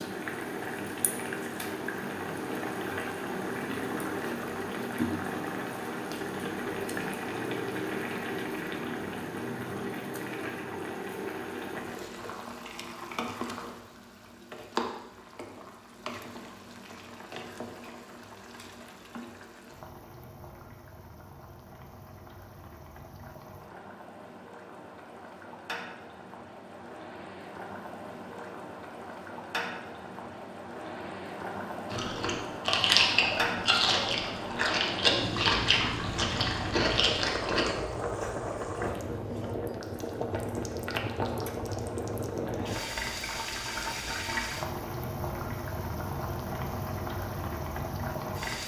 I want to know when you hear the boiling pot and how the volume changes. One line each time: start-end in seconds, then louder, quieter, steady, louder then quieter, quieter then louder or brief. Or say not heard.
0.0-48.6 quieter then louder.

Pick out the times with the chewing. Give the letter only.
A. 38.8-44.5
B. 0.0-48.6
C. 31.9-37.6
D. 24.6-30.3
C.